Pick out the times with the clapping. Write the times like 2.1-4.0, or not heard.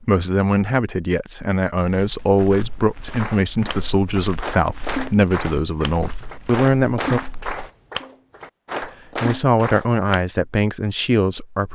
3.1-10.2.